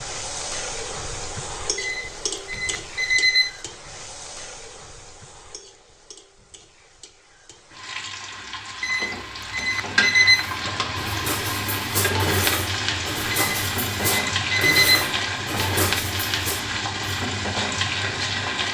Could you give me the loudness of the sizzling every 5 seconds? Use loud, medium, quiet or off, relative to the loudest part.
medium, medium, loud, loud.